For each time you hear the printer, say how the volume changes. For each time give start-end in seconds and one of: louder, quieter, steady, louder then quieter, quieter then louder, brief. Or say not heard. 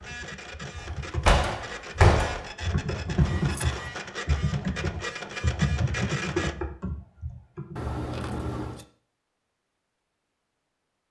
0.0-6.5 louder.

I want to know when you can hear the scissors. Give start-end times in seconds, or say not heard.
3.2-3.9, 7.8-8.8.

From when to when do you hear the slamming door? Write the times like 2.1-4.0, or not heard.
0.8-2.5.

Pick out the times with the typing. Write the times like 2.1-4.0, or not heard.
0.0-7.9.